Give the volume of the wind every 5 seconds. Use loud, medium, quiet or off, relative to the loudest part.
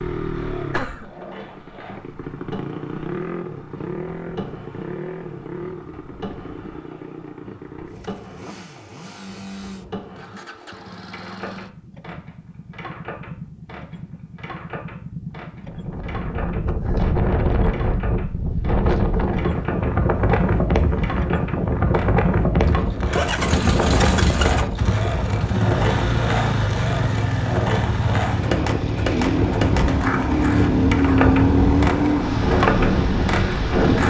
off, off, off, loud, loud, medium, loud.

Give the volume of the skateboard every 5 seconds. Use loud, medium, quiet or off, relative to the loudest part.
quiet, quiet, quiet, quiet, medium, loud, loud.